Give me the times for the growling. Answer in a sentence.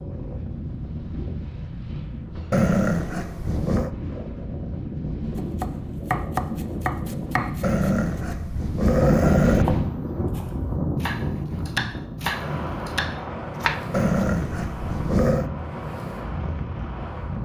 You can hear the growling from 2.5 to 3.9 s, from 7.6 to 9.7 s and from 13.9 to 15.5 s.